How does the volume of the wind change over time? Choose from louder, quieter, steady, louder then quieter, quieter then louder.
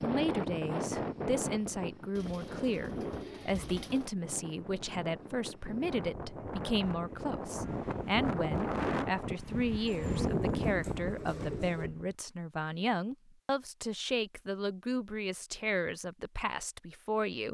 quieter then louder.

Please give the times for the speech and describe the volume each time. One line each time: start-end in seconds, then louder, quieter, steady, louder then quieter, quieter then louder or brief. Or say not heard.
0.0-17.5 steady.